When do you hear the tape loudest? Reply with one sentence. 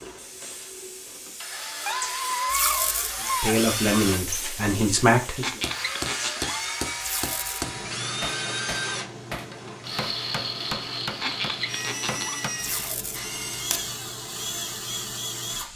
The volume of the tape peaks at 3 seconds.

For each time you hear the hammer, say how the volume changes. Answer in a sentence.
You can hear the hammer from 5.4 to 12.5 s, at a steady volume.